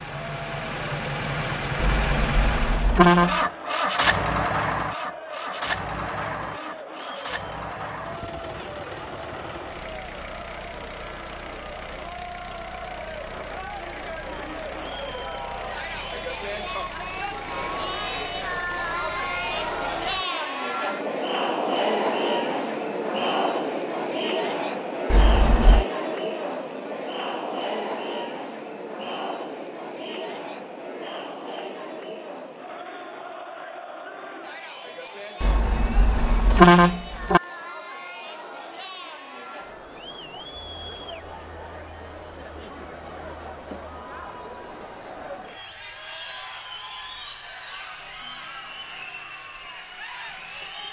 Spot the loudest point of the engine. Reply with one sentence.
The loudest moment of the engine is at 4 seconds.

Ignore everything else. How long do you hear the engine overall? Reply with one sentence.
You can hear the engine for 20 seconds altogether.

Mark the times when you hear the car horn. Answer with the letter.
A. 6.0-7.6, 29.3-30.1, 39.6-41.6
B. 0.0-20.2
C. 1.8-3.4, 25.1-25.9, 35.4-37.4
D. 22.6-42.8
C.